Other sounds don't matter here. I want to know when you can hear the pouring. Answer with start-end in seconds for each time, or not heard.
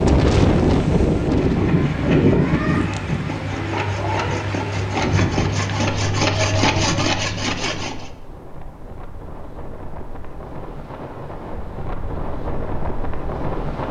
not heard.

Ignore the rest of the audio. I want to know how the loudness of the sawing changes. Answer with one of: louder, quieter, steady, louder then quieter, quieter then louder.
louder.